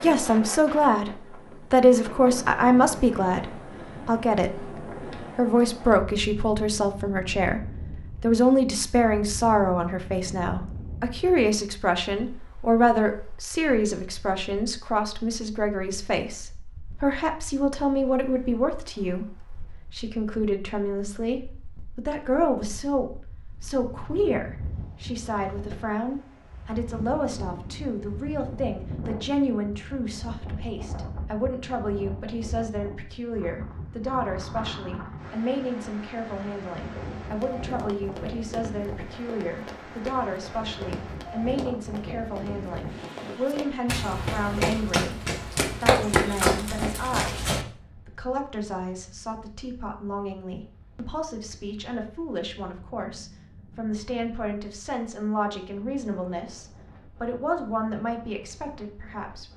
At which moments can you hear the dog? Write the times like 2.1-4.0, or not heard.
not heard.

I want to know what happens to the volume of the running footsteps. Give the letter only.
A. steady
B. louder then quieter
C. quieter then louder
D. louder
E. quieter
D.